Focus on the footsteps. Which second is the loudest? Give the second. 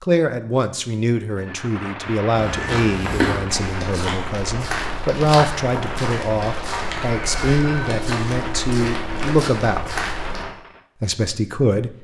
3 s.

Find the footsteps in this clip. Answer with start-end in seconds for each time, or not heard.
2.3-10.4.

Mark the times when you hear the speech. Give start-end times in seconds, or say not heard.
0.0-9.9, 11.0-11.9.